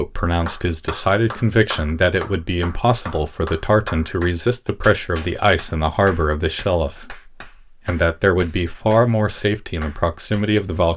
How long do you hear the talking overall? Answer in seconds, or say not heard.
11 s.